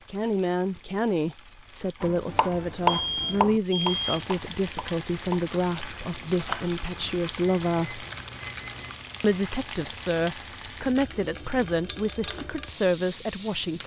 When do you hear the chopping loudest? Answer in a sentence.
The volume of the chopping peaks at 3 seconds.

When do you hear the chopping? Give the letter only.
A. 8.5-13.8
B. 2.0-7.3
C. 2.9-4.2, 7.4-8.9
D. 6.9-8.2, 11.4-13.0
B.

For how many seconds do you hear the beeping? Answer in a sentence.
You can hear the beeping for 3 seconds altogether.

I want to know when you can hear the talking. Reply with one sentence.
The talking can be heard from 0.1 to 8.1 s and from 9.2 to 13.8 s.